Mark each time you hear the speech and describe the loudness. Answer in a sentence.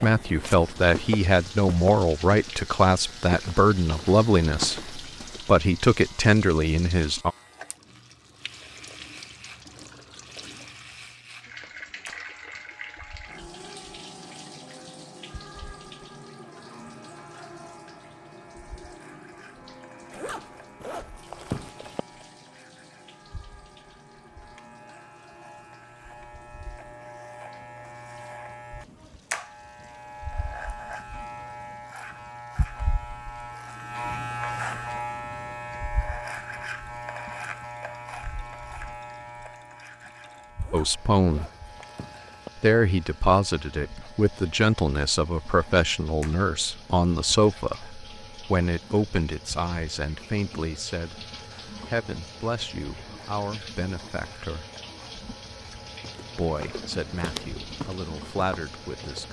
You can hear the speech from 0.0 to 7.3 s, at a steady volume; briefly from 40.7 to 41.5 s; from 42.5 to 54.6 s, getting quieter; and briefly from 56.4 to 59.2 s.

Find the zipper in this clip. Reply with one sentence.
You can hear the zipper from 20.1 to 22.0 s and from 40.6 to 42.5 s.